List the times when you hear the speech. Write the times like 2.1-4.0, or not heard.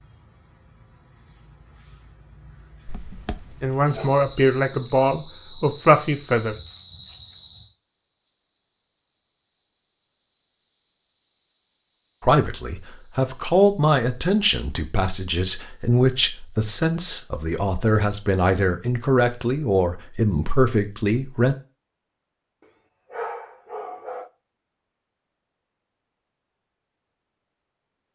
3.6-6.5, 12.2-21.6.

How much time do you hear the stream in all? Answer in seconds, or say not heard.
not heard.